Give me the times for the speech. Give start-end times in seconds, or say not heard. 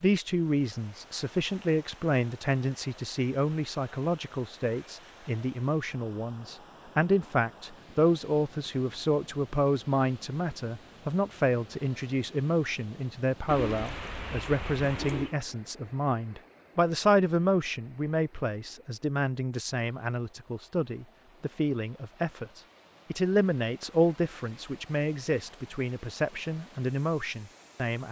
0.0-28.0.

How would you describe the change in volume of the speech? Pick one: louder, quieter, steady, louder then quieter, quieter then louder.
steady.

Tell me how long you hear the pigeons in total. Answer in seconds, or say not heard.
2 s.